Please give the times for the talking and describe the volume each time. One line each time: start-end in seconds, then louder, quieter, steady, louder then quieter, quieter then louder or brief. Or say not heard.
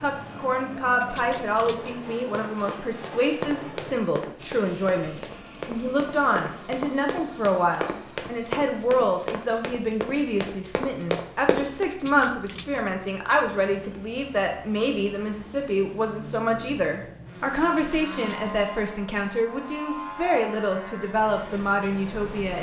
0.0-22.5 steady.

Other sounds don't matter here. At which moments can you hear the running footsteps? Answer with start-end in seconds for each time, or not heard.
2.2-11.9.